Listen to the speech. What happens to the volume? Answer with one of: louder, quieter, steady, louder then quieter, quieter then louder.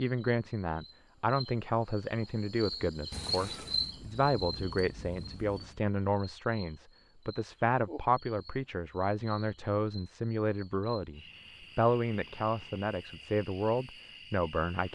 steady.